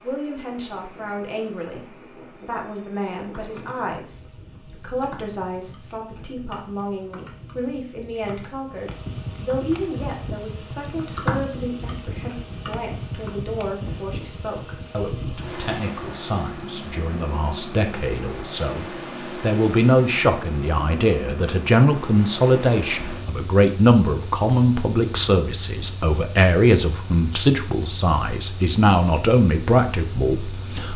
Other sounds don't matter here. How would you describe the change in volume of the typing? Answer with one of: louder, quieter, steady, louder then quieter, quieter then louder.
louder.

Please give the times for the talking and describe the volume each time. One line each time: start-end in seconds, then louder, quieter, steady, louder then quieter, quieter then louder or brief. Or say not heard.
0.0-30.9 louder.